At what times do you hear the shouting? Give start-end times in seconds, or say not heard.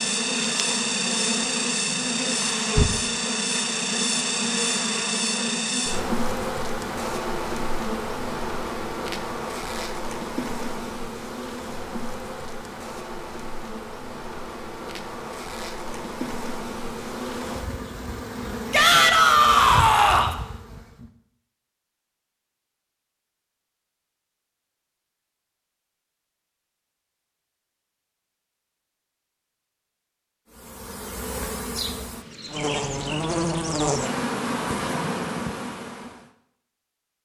18.7-20.4.